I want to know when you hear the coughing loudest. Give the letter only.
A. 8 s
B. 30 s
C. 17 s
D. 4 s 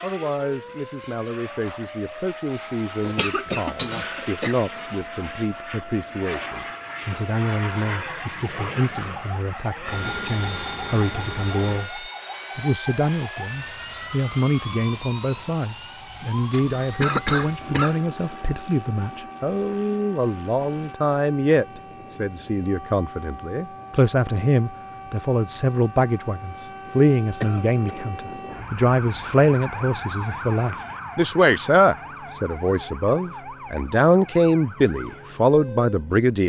C.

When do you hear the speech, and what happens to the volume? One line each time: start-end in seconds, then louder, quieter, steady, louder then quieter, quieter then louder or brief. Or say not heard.
0.0-36.4 louder.